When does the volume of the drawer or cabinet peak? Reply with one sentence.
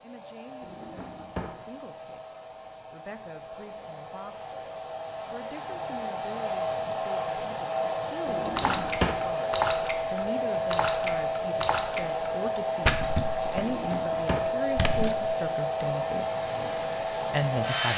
The volume of the drawer or cabinet peaks at 9 seconds.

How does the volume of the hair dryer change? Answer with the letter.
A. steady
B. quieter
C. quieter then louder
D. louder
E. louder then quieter
D.